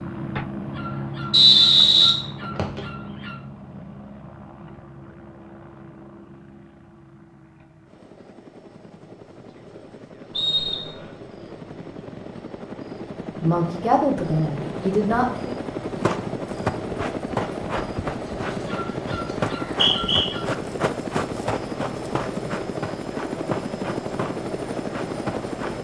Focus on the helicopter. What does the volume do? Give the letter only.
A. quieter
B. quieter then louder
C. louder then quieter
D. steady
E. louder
B.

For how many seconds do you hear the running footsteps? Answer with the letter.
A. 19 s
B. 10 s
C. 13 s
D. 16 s
B.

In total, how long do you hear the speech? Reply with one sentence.
The speech can be heard for 2 seconds in total.